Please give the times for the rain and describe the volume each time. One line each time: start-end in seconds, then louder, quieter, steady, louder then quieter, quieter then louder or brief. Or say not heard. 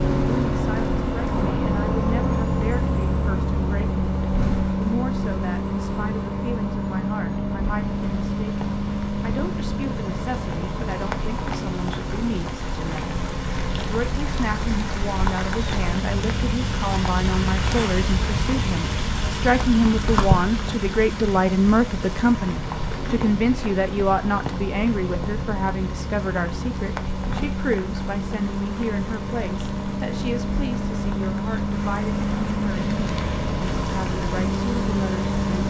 7.7-35.6 louder then quieter.